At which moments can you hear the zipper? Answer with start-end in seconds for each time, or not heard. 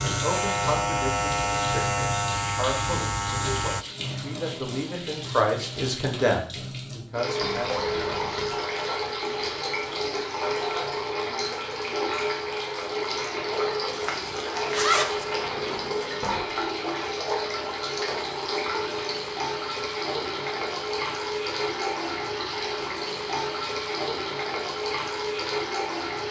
14.0-15.3.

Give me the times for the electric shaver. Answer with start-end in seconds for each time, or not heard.
0.0-3.9.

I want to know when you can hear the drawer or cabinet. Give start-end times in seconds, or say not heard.
7.4-8.6, 15.3-16.6.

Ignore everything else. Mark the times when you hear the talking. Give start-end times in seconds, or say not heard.
0.0-7.8.